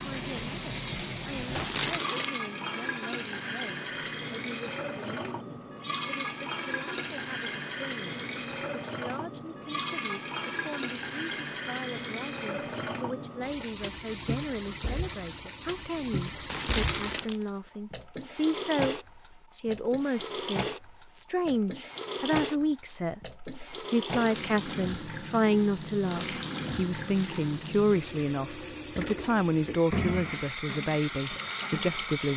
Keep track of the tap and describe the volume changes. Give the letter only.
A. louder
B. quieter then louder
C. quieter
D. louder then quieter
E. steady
E.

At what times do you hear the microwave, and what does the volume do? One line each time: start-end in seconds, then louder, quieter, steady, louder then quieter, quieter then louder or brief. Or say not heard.
not heard.